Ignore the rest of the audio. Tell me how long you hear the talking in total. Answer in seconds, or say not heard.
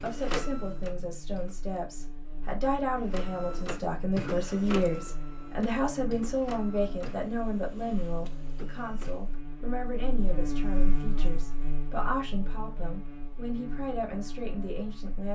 15 s.